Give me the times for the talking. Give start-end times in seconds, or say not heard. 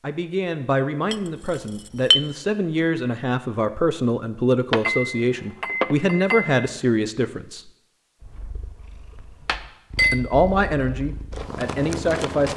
0.0-7.7, 10.1-12.5.